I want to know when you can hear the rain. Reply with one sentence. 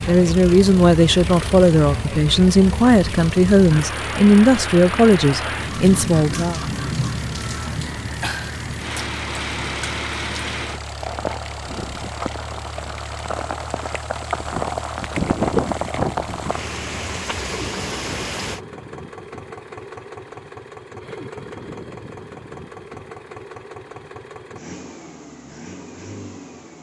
You can hear the rain from 0.0 to 18.6 s.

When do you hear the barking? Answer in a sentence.
The barking can't be heard in this clip.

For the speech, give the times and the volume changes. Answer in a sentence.
The speech can be heard from 0.1 to 6.6 s, at a steady volume.